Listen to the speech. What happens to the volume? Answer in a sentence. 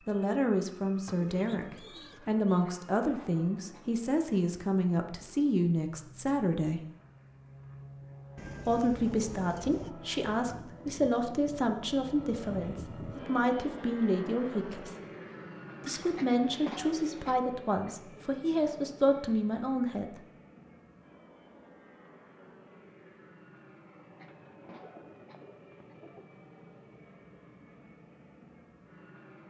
The volume of the speech stays about the same.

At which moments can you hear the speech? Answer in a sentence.
You can hear the speech from 0.1 to 6.8 s, from 8.7 to 14.9 s and from 15.8 to 20.1 s.